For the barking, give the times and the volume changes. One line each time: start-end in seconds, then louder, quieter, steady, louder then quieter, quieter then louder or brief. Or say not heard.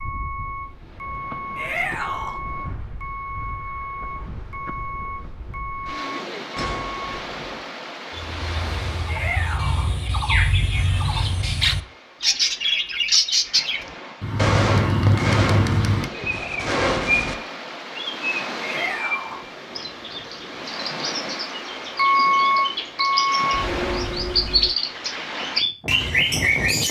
not heard.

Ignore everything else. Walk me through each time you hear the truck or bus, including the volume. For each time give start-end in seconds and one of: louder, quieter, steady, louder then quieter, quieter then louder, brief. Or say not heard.
0.0-7.2 steady
21.9-24.7 brief.